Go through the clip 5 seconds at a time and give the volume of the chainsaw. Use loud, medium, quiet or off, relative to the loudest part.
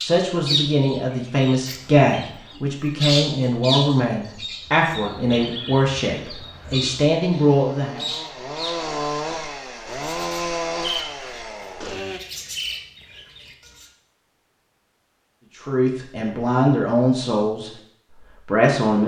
off, loud, loud, off.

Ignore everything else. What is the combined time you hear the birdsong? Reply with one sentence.
The birdsong can be heard for 14 seconds in total.